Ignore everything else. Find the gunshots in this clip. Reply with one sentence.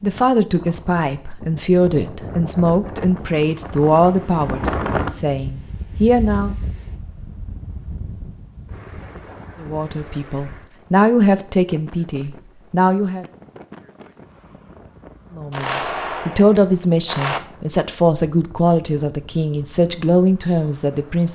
The gunshots can be heard from 15.5 to 17.4 s.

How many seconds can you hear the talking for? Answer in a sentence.
You can hear the talking for 16 seconds altogether.